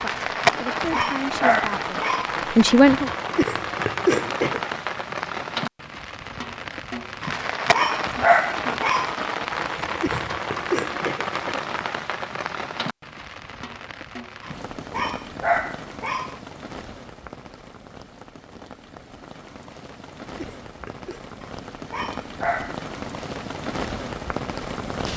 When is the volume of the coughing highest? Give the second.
4 s.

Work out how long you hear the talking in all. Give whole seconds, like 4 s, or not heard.
3 s.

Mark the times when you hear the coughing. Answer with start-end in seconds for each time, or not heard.
3.4-4.6, 10.0-11.7, 20.4-21.2.